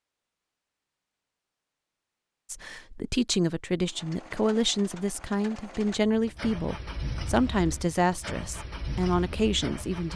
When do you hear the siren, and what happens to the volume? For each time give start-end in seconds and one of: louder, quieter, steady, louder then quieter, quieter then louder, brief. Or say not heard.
not heard.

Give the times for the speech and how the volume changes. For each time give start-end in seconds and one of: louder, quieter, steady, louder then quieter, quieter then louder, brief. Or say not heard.
2.5-10.1 steady.